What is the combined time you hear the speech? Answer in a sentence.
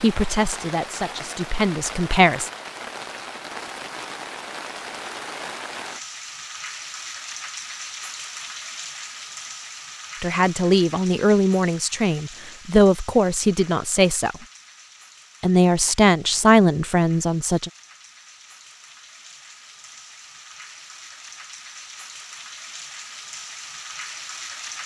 You can hear the speech for 9 seconds altogether.